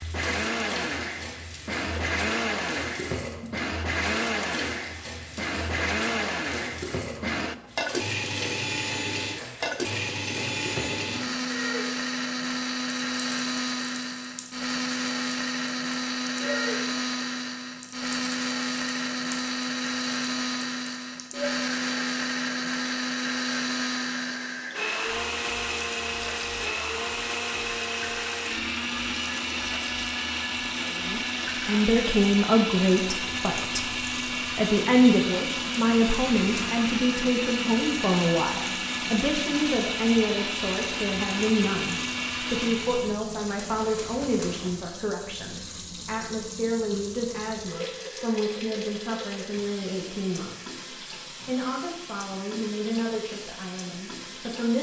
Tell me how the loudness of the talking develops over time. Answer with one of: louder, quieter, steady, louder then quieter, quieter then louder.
quieter.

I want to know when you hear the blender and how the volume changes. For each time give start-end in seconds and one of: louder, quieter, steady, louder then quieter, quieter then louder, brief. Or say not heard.
0.0-43.2 steady.